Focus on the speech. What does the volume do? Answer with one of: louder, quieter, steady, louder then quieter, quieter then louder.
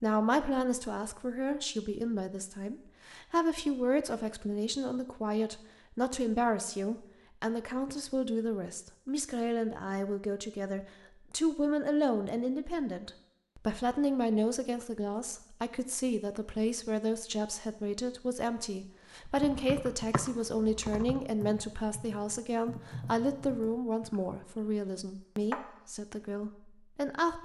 steady.